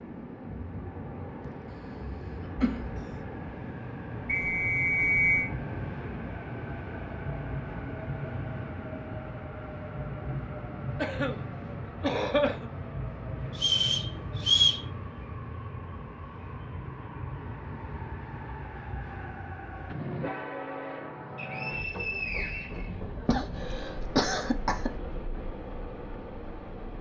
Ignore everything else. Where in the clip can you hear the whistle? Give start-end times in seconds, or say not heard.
4.2-5.5, 13.6-14.8, 21.4-22.9.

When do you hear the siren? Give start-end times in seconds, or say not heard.
not heard.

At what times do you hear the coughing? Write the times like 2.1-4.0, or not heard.
1.4-3.1, 10.9-12.7, 23.2-25.0.